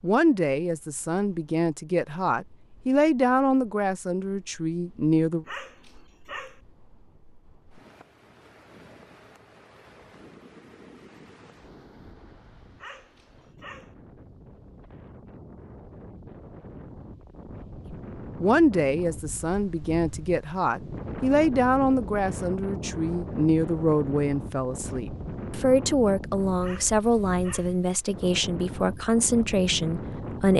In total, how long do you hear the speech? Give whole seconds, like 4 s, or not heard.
18 s.